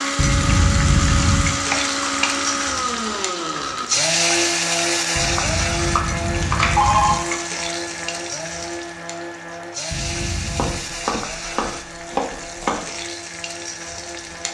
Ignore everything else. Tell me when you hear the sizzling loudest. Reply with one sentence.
The volume of the sizzling peaks at 4 seconds.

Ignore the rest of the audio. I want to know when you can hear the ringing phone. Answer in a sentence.
The ringing phone can be heard from 0.1 to 1.6 s, from 5.2 to 7.2 s and from 9.9 to 10.8 s.